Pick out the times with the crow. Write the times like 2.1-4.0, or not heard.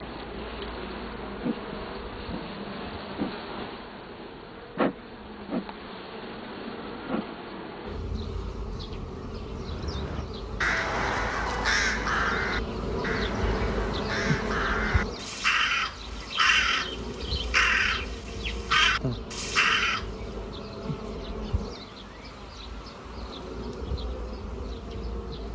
9.7-20.1.